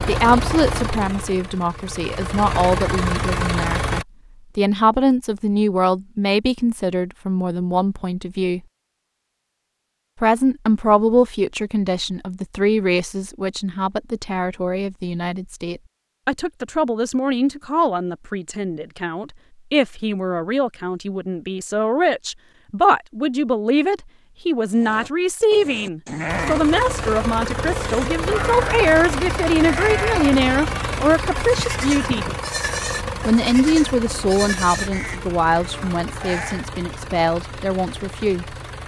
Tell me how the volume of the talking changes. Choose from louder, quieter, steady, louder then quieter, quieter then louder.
steady.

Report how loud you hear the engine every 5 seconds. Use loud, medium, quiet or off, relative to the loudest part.
loud, off, off, off, off, loud, loud, medium.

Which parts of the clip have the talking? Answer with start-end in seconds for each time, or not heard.
0.1-8.6, 10.2-32.2, 33.2-38.5.